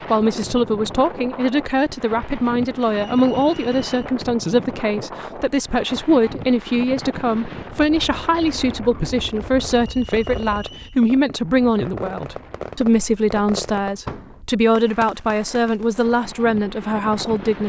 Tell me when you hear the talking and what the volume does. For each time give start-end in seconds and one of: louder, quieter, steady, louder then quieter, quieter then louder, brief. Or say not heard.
0.1-17.6 steady.